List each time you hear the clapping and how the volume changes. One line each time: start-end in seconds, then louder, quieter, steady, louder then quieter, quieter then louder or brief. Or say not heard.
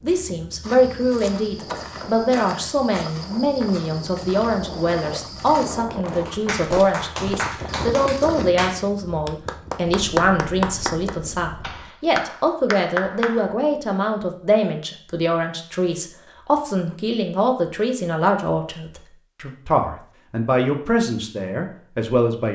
6.1-13.5 steady.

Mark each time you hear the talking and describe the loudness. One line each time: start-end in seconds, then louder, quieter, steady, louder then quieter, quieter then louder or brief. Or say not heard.
0.0-22.5 steady.